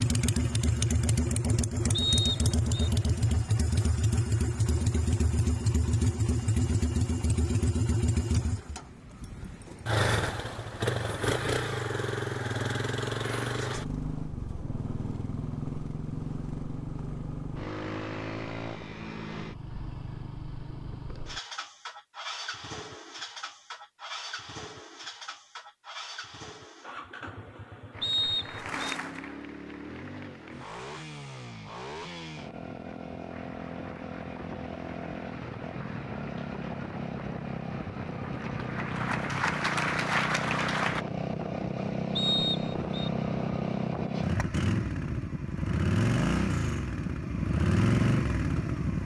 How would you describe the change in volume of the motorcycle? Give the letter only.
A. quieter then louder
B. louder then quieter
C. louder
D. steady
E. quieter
A.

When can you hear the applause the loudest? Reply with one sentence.
The loudest moment of the applause is at 40 seconds.